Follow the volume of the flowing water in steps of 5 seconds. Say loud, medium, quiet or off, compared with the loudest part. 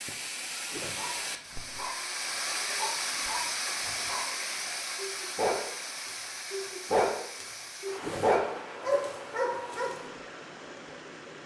loud, medium, medium.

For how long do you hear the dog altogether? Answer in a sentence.
The dog can be heard for 9 seconds in total.